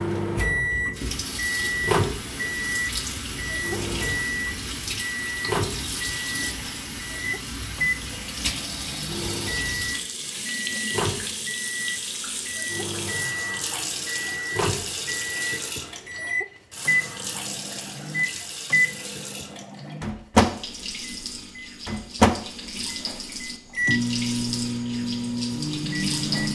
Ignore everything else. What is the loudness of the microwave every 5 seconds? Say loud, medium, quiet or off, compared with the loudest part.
medium, medium, medium, medium, loud, medium.